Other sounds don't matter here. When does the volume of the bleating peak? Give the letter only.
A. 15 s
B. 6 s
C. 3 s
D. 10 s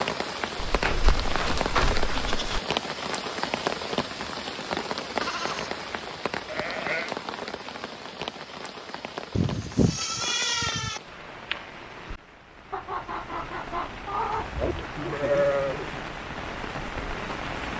A.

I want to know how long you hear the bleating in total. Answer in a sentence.
You can hear the bleating for 7 seconds altogether.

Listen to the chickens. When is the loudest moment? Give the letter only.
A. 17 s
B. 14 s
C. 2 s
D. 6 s
B.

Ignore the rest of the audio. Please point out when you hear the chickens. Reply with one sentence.
You can hear the chickens from 12.7 to 14.8 s.